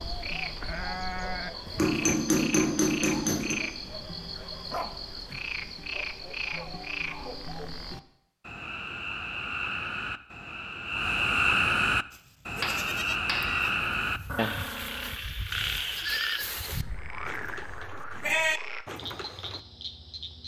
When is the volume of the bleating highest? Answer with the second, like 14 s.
18 s.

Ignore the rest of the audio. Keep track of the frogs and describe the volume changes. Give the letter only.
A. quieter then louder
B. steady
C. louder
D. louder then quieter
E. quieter
D.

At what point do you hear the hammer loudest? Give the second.
2 s.